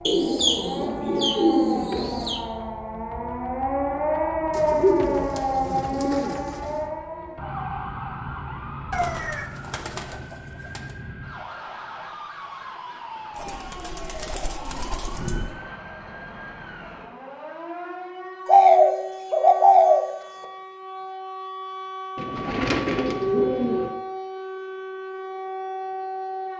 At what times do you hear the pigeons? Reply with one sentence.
You can hear the pigeons from 0.1 to 2.4 s, from 4.5 to 6.8 s, from 8.9 to 10.8 s, from 13.3 to 15.5 s, from 18.4 to 20.1 s and from 22.1 to 23.9 s.